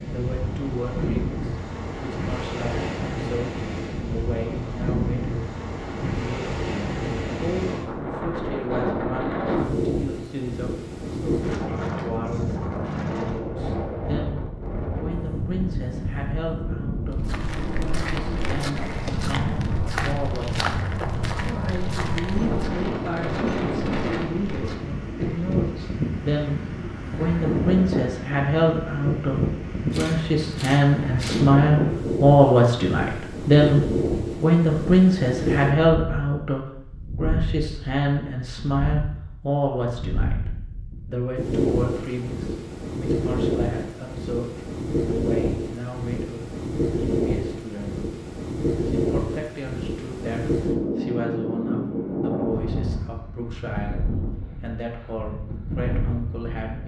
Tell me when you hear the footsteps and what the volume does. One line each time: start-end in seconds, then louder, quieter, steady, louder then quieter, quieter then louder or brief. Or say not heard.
17.1-25.6 quieter.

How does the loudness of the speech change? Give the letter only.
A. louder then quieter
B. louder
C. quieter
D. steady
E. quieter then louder
A.